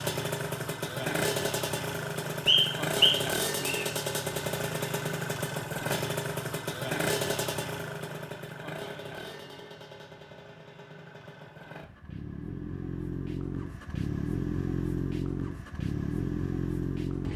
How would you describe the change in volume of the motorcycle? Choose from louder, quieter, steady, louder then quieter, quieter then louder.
quieter then louder.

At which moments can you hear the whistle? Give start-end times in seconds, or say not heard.
2.5-3.9.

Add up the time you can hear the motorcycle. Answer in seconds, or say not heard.
17 s.